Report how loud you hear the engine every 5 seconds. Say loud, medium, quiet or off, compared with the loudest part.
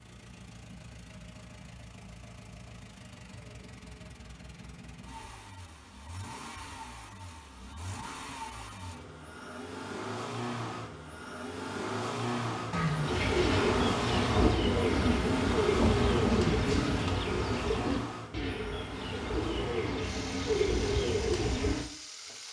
quiet, medium, loud, loud, medium.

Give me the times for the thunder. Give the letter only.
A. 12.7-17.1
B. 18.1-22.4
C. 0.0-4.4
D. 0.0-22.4
A.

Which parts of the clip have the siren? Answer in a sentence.
You can't hear the siren here.